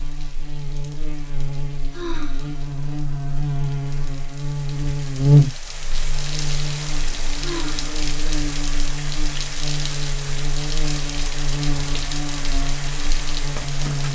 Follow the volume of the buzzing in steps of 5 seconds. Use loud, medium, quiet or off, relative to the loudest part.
medium, loud, medium.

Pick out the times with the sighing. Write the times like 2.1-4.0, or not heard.
1.9-2.6, 7.4-8.0.